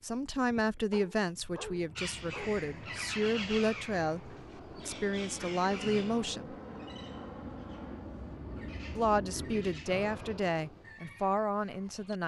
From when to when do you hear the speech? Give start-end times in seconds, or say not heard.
0.0-6.5, 8.9-12.2.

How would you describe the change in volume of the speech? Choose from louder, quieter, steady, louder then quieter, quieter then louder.
steady.